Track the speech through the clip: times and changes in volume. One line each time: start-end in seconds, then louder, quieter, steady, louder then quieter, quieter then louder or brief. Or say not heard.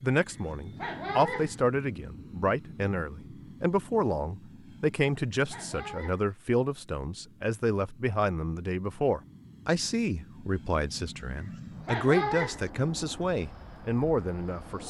0.0-14.8 steady.